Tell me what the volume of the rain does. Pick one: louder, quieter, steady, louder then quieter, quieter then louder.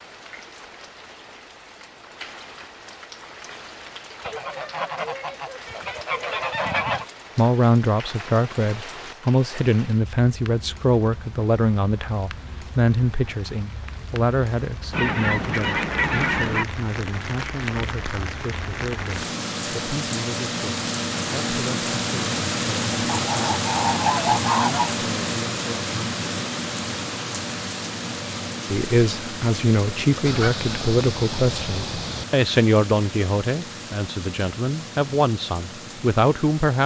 louder then quieter.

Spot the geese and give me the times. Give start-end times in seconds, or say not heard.
4.2-7.0, 14.9-16.6, 23.1-24.9, 30.2-32.2.